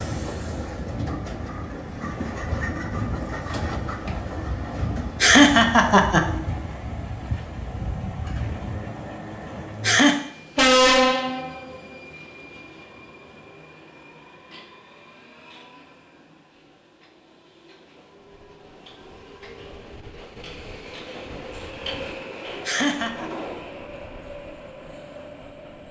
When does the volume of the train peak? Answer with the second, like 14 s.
11 s.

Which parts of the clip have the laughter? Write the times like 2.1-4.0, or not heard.
4.8-6.2, 9.4-10.2, 22.2-23.2.